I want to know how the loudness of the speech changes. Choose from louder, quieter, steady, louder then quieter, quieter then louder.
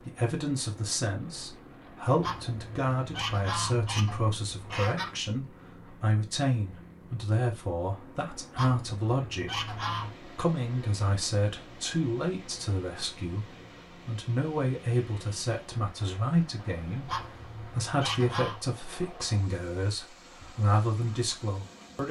steady.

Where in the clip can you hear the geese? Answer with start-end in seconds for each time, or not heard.
2.2-5.2, 8.6-10.2, 17.1-18.6.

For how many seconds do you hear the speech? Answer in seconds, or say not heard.
22 s.